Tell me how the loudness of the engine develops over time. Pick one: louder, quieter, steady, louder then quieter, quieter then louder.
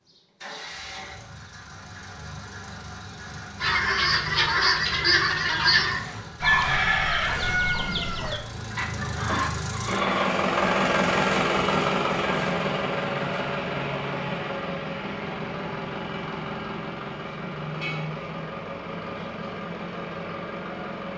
louder then quieter.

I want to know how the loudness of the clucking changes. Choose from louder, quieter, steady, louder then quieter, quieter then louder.
quieter.